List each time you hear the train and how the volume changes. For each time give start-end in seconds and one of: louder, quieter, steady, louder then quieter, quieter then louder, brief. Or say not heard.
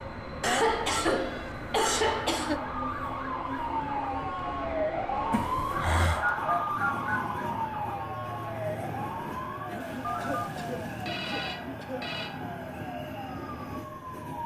0.0-14.4 steady.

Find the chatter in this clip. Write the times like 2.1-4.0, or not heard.
not heard.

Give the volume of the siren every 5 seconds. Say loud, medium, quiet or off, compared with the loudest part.
loud, loud, medium.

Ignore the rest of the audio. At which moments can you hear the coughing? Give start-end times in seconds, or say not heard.
0.4-2.6, 5.3-6.2, 9.7-12.1.